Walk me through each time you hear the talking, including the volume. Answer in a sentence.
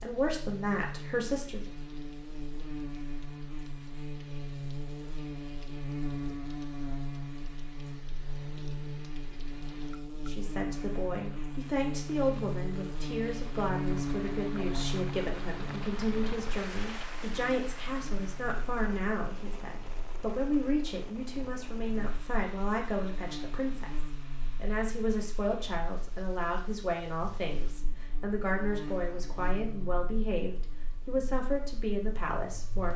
The talking can be heard briefly from 0.0 to 1.6 s; and from 10.2 to 32.9 s, at a steady volume.